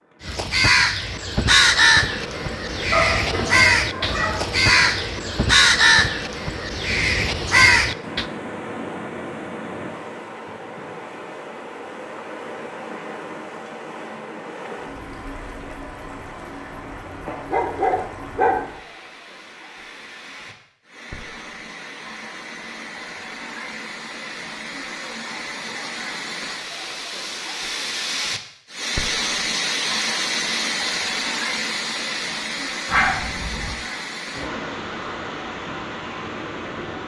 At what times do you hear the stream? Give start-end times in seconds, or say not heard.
0.0-37.0.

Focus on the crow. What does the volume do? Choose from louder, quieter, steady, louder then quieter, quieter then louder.
quieter then louder.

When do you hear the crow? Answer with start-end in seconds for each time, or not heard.
0.2-8.2.